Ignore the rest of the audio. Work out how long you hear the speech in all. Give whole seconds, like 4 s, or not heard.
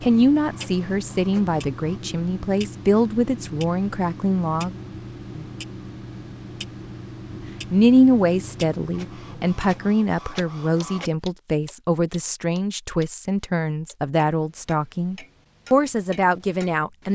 14 s.